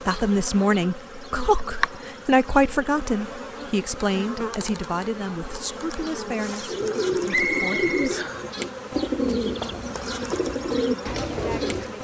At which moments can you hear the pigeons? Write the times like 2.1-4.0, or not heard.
6.7-11.9.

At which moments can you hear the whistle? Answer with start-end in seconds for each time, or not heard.
7.3-8.2.